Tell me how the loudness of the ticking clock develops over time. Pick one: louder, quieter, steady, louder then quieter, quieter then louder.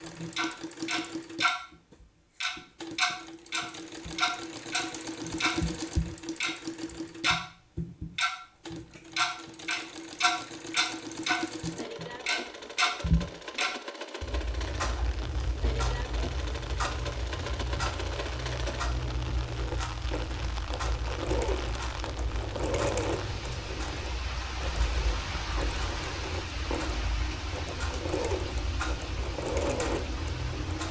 quieter.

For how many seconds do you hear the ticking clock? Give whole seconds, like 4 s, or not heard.
31 s.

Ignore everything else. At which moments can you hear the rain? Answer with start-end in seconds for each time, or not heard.
14.6-30.8.